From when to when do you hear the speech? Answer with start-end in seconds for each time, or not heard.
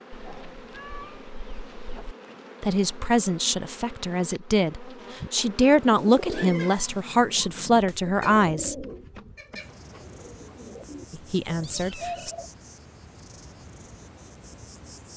2.6-8.8, 11.1-12.3.